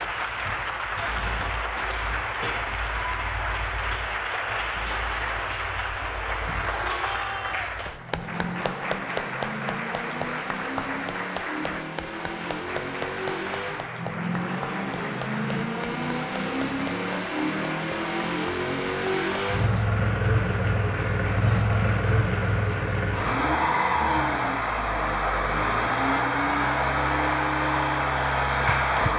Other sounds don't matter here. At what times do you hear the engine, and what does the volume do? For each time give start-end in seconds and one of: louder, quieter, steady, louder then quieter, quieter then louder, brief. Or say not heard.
0.0-29.1 louder.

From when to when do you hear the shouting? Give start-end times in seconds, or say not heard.
6.4-7.8.